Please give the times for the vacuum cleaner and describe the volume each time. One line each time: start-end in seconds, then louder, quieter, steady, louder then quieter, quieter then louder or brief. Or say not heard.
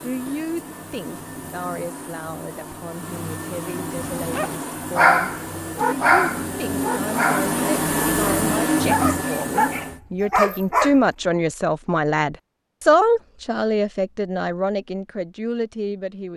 0.0-10.0 louder.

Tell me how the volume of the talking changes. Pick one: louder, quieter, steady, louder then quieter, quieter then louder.
louder.